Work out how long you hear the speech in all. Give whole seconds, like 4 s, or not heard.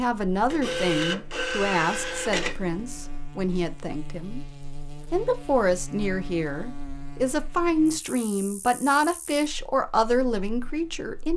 11 s.